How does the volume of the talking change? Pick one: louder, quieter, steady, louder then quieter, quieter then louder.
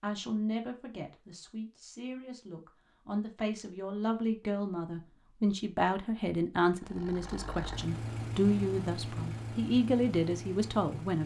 louder.